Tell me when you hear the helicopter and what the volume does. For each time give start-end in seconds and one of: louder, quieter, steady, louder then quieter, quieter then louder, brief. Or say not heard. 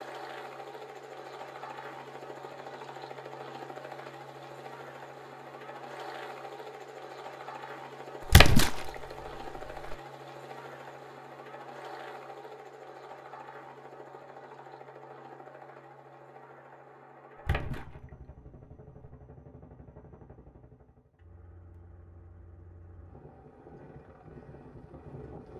0.0-25.5 quieter.